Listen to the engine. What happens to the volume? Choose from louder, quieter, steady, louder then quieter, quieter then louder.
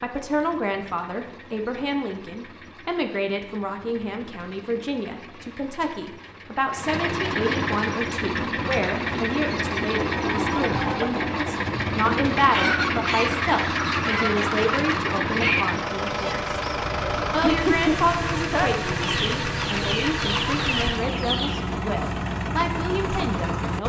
louder.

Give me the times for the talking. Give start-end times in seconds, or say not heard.
0.0-16.4, 17.3-23.8.